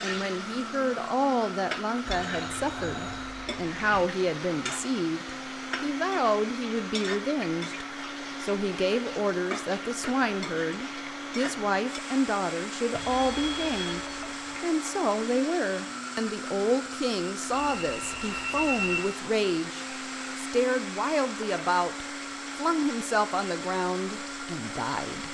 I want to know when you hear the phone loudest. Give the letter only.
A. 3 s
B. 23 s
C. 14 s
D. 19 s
D.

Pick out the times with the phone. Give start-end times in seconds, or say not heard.
2.0-4.0, 12.9-14.6, 17.5-19.0.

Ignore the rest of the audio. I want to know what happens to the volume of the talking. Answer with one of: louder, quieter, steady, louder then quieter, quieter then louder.
steady.